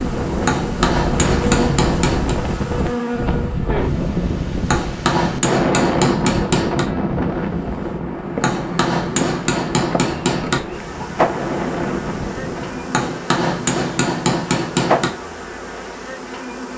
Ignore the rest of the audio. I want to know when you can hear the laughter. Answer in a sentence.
The laughter can't be heard in this clip.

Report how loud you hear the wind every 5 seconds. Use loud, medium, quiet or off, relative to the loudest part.
loud, loud, medium, off.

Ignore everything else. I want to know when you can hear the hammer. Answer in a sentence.
You can hear the hammer from 0.5 to 2.4 s, from 4.7 to 6.8 s, from 8.4 to 10.6 s and from 12.9 to 15.1 s.